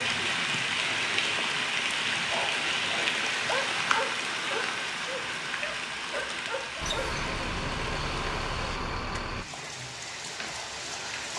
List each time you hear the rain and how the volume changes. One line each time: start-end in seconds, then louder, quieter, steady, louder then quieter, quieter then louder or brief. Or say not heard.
0.0-11.3 quieter.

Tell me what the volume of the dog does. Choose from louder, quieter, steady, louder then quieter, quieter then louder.
louder then quieter.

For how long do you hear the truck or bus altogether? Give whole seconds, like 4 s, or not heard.
3 s.